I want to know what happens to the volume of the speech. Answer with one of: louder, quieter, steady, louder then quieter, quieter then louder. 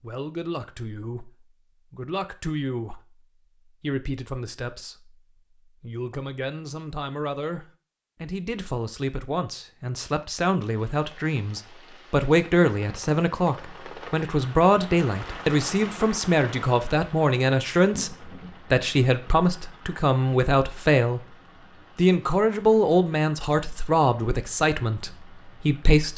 louder.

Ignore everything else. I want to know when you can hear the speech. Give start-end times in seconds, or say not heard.
0.0-21.2, 21.9-26.1.